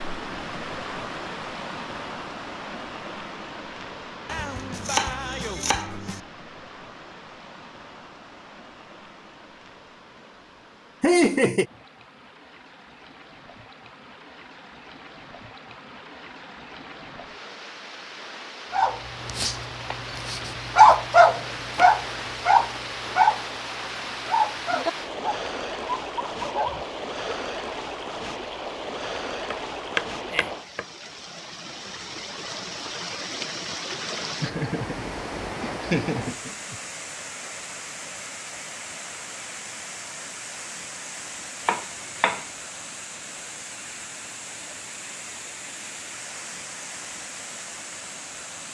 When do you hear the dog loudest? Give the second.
21 s.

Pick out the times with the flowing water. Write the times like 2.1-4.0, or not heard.
0.0-48.6.